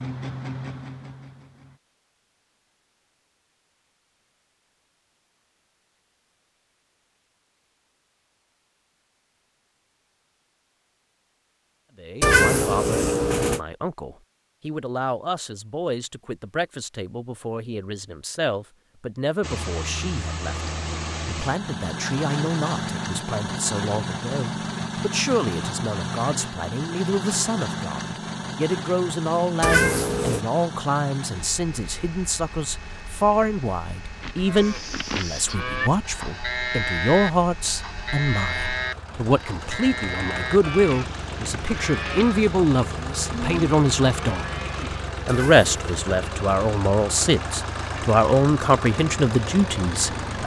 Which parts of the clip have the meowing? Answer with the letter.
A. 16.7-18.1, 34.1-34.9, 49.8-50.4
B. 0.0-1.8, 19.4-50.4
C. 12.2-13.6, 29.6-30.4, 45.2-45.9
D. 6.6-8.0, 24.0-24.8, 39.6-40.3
C.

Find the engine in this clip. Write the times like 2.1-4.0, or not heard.
0.0-1.8, 19.4-50.4.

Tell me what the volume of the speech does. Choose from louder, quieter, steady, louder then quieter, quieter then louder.
louder.